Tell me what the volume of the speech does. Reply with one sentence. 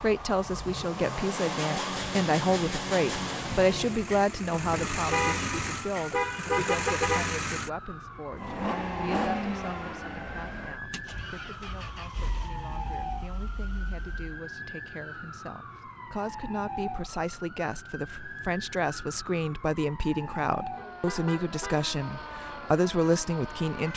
The loudness of the speech goes down, then up.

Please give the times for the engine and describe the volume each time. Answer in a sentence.
The engine can be heard from 0.0 to 14.4 s, getting quieter.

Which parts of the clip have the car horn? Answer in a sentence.
You can hear the car horn from 5.0 to 7.4 s and from 20.8 to 21.9 s.